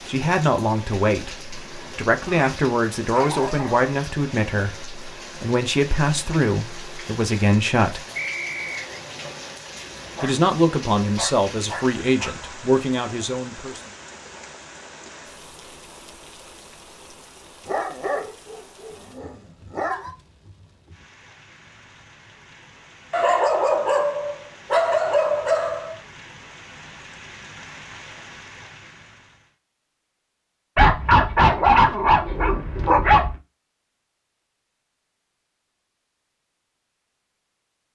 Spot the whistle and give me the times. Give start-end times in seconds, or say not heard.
8.2-8.9.